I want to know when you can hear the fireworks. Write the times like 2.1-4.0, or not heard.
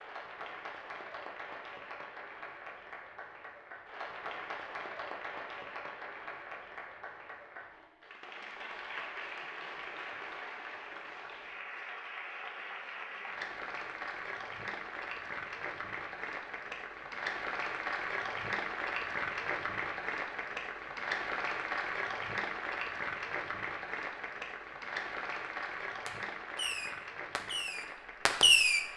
26.1-28.9.